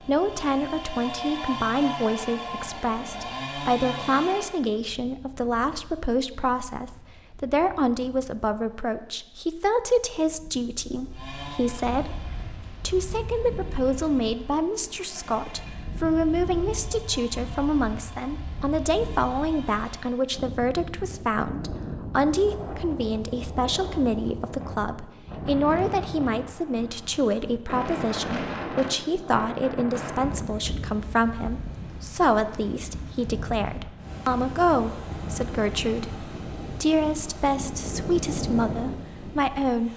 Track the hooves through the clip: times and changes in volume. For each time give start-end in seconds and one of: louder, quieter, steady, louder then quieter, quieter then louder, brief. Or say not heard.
not heard.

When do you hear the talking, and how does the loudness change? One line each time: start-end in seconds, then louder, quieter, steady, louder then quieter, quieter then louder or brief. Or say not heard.
0.1-39.9 steady.